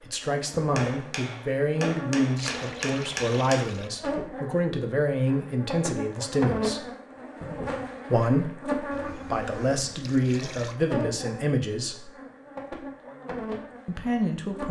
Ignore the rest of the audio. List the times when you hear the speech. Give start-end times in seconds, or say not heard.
0.0-6.8, 8.1-12.1, 13.8-14.6.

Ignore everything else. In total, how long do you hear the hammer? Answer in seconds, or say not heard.
3 s.